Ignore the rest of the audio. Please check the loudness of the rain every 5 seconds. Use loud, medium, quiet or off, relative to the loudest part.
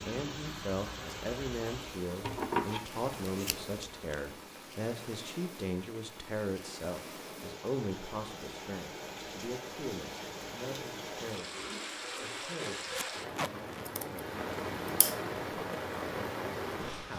medium, medium, loud, loud.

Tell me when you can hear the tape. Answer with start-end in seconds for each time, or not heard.
12.9-13.9.